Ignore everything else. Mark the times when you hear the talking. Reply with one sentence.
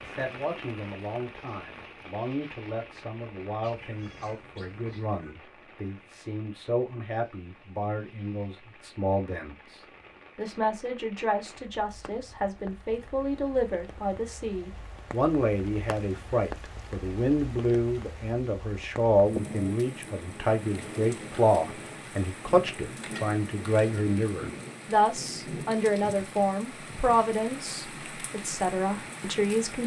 The talking can be heard from 0.0 to 29.8 s.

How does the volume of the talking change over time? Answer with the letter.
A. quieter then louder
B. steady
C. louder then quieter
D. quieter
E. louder
E.